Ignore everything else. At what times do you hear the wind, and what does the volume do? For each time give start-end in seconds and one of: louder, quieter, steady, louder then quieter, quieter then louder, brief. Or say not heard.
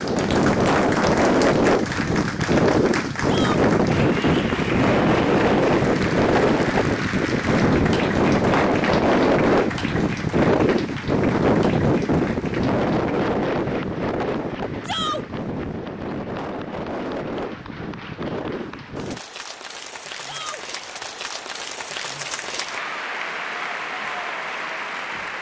0.0-19.2 quieter.